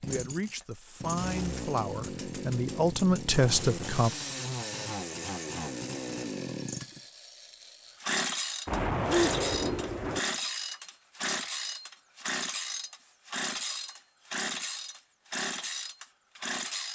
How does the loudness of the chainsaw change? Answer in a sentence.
The volume of the chainsaw stays about the same.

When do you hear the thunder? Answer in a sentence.
You can hear the thunder from 8.7 to 10.2 s.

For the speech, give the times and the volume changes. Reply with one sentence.
The speech can be heard from 0.0 to 4.1 s, getting louder.